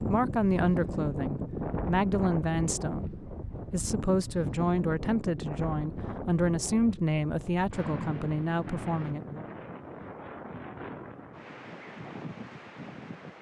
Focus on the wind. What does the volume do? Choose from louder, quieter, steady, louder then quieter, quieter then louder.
quieter.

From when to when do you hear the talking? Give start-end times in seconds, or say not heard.
0.0-9.4.